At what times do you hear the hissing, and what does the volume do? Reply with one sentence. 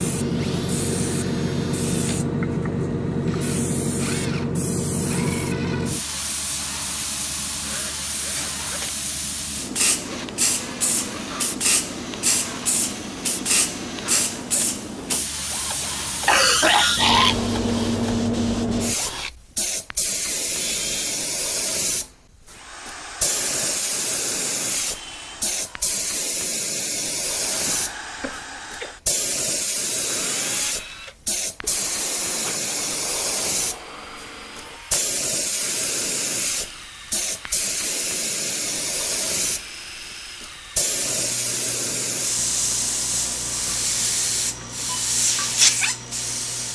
The hissing can be heard from 0.0 to 46.7 s, at a steady volume.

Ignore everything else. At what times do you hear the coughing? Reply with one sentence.
The coughing can be heard from 16.2 to 17.4 s and from 27.6 to 28.9 s.